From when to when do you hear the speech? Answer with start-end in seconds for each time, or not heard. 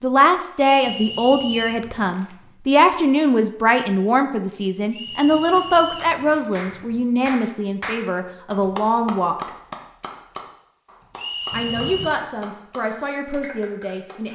0.0-9.5, 11.5-14.2.